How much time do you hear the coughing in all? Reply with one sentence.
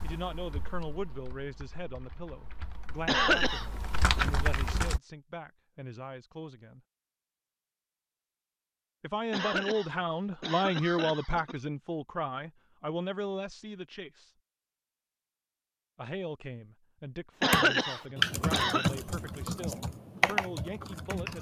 The coughing can be heard for 5 seconds in total.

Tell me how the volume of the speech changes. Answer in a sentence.
The volume of the speech goes up, then down.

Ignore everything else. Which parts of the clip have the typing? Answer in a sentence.
The typing can be heard from 0.0 to 5.0 s and from 17.5 to 21.3 s.